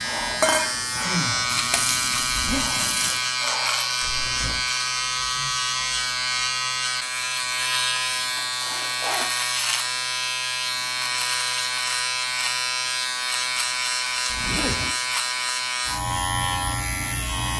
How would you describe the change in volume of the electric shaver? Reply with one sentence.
The loudness of the electric shaver stays about the same.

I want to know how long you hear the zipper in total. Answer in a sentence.
You can hear the zipper for 2 seconds altogether.